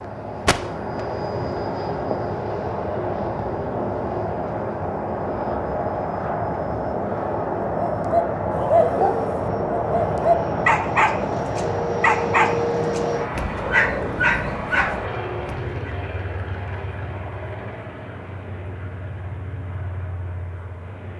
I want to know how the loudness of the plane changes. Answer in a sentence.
The volume of the plane goes down.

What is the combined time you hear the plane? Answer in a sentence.
The plane can be heard for 21 seconds in total.